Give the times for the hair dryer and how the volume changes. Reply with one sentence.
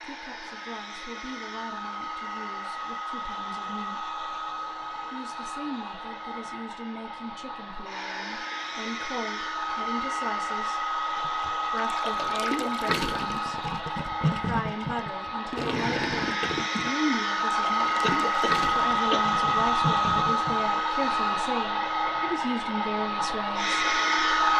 You can hear the hair dryer from 0.0 to 24.5 s, getting louder.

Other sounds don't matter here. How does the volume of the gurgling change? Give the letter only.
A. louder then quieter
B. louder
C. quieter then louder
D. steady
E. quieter
D.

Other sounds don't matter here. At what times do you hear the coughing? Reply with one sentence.
The coughing can be heard from 18.0 to 19.6 s.